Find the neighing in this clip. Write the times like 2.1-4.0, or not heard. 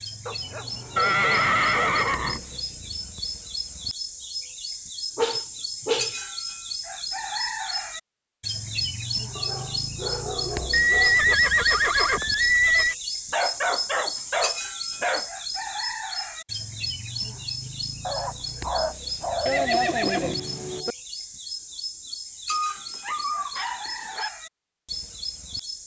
0.9-2.5, 10.7-12.9, 19.4-20.9.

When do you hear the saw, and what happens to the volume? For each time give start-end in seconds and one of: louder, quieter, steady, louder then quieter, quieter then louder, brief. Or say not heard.
not heard.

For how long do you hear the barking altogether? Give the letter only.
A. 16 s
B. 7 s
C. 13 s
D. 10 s
D.